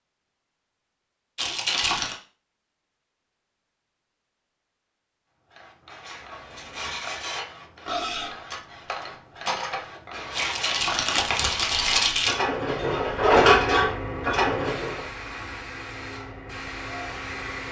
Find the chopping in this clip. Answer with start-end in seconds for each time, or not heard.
not heard.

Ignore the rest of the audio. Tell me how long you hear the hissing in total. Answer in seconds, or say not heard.
12 s.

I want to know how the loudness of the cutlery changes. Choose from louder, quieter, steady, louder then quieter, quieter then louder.
louder.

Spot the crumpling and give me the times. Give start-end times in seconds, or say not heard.
1.4-2.2, 10.3-12.3.